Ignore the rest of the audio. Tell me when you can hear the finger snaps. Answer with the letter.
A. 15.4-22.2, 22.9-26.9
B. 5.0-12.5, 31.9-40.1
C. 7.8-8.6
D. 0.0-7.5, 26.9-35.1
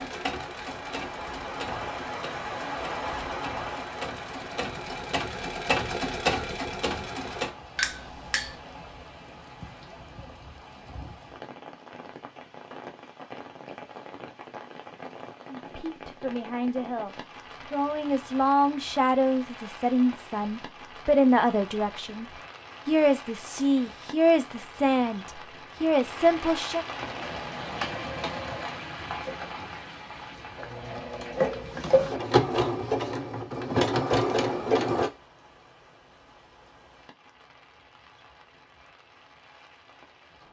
C.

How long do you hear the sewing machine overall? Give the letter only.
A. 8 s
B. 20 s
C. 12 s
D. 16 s
D.